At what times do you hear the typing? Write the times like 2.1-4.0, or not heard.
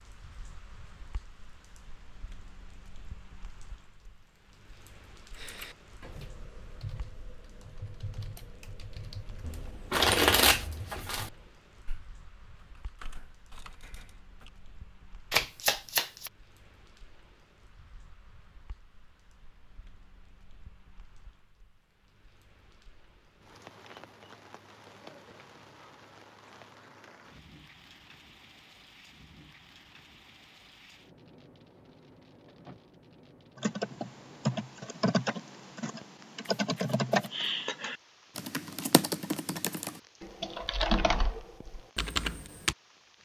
5.3-14.5, 33.5-42.8.